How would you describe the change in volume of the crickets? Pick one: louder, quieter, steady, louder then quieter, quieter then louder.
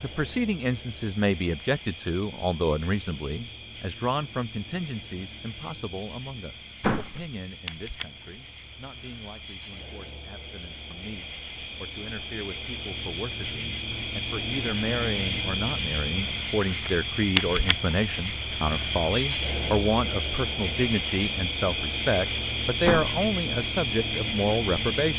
louder.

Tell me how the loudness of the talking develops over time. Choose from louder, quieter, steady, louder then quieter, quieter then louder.
quieter then louder.